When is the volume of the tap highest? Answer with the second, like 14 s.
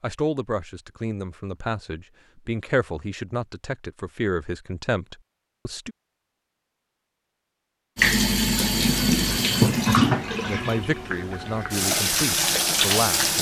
10 s.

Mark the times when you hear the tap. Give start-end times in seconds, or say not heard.
8.0-13.3.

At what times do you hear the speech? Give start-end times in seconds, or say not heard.
0.0-6.0, 10.4-13.3.